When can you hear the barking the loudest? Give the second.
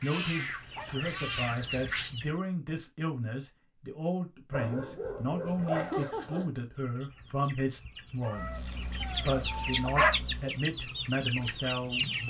10 s.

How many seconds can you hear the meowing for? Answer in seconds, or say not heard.
5 s.